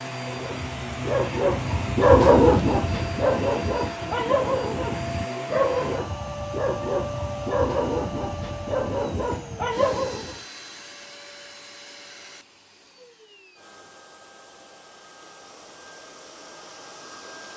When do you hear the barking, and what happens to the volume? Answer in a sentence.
You can hear the barking from 0.2 to 10.4 s, getting quieter.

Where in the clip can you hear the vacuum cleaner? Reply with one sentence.
The vacuum cleaner can be heard from 0.0 to 17.5 s.